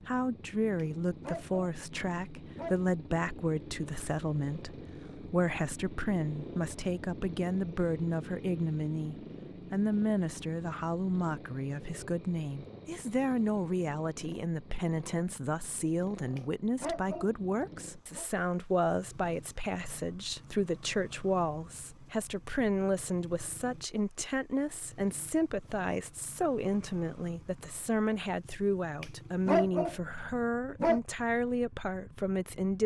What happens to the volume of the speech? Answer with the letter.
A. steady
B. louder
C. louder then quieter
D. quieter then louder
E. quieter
A.